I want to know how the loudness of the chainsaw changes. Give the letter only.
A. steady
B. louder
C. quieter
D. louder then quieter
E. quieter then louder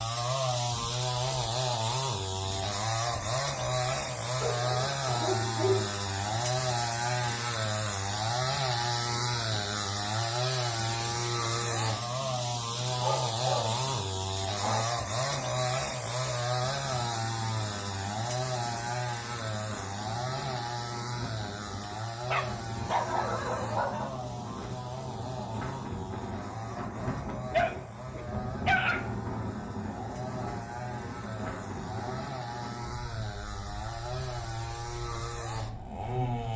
C.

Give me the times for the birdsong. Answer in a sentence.
The birdsong can't be heard in this clip.